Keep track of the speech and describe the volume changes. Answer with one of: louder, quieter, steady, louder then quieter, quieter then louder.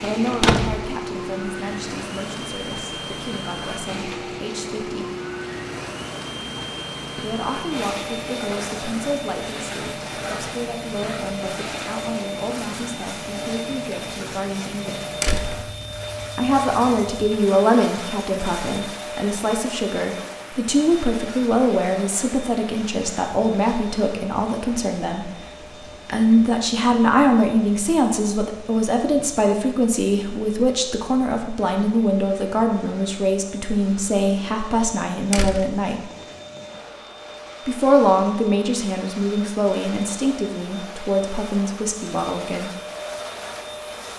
louder.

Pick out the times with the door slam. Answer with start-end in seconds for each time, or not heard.
0.3-0.9, 15.2-15.7, 35.3-35.8.